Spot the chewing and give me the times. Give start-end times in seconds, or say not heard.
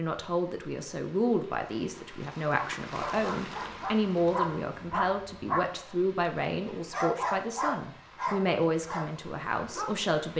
not heard.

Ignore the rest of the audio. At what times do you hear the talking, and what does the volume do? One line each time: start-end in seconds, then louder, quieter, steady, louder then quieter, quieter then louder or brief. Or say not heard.
0.0-10.3 steady.